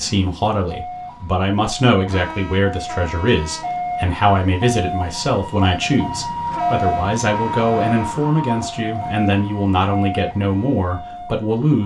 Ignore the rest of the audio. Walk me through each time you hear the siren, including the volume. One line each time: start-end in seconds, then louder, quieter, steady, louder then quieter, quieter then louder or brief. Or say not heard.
0.0-11.8 louder then quieter.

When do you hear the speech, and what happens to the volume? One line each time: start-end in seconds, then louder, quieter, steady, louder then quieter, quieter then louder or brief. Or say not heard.
0.0-11.8 steady.